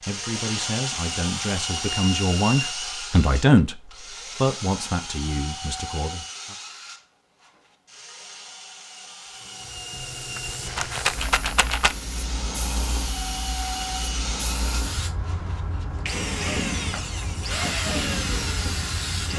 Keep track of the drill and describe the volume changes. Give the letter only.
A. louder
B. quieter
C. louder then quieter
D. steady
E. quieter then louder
E.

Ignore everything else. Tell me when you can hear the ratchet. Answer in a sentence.
The ratchet can't be heard in this clip.